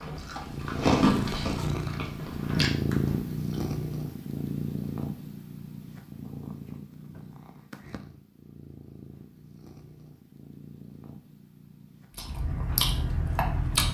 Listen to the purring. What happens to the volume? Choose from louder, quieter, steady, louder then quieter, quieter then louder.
quieter.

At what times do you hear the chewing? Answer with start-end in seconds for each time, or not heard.
0.0-3.5, 12.2-13.8.